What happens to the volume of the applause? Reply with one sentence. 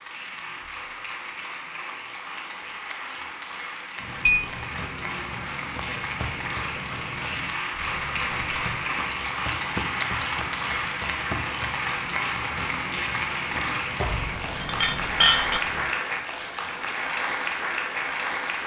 The loudness of the applause goes up.